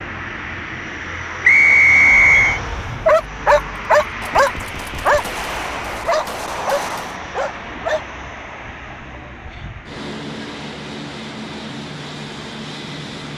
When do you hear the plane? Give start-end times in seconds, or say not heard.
0.0-13.3.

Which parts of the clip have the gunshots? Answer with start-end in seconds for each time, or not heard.
4.2-7.2.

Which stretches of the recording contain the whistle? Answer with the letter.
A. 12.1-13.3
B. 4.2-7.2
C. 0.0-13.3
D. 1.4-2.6
D.